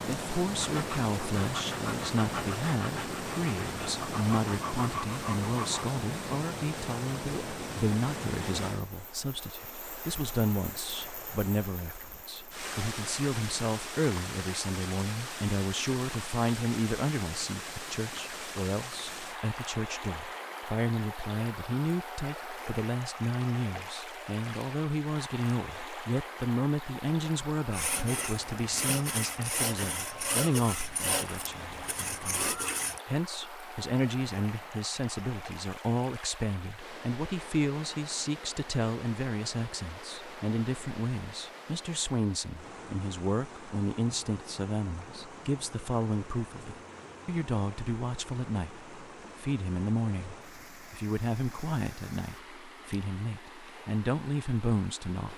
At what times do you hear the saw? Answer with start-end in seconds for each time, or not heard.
0.6-5.8, 27.7-33.0.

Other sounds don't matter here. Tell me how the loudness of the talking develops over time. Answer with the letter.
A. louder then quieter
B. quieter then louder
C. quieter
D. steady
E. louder
D.